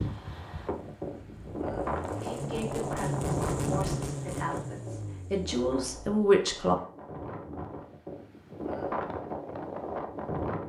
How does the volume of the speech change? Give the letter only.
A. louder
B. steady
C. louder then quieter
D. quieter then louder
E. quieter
A.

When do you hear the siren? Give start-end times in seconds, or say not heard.
not heard.